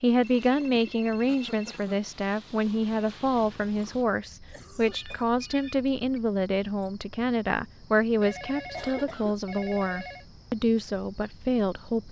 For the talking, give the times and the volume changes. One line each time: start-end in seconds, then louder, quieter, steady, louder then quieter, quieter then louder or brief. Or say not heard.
0.0-12.0 steady.